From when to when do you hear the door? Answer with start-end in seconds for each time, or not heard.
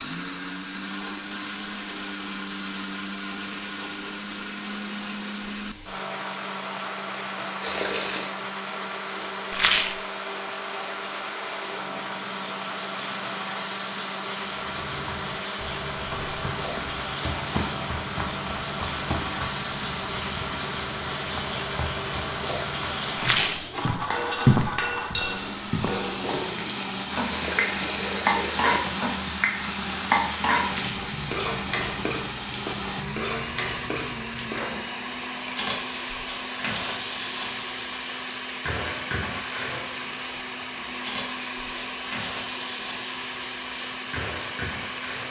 not heard.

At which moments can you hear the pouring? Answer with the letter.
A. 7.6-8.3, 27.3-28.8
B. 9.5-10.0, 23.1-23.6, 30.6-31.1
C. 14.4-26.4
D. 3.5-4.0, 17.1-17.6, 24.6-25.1
A.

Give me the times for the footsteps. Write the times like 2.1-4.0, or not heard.
14.4-26.4.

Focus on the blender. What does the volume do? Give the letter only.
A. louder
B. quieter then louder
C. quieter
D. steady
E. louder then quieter
D.